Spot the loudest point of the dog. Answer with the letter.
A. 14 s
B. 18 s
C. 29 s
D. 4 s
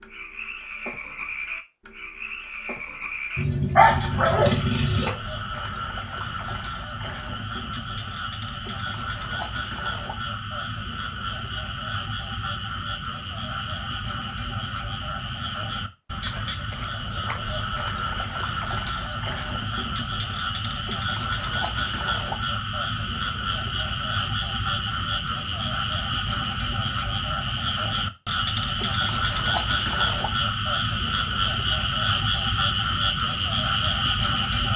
D.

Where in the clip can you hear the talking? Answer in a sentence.
The talking can't be heard in this clip.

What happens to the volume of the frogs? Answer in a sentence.
The volume of the frogs goes up.